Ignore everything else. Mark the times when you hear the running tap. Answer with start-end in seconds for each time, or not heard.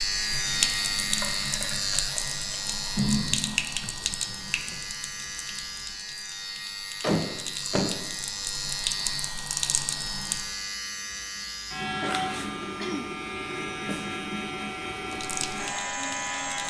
0.0-10.5, 15.1-16.6.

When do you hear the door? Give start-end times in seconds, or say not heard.
7.0-8.0.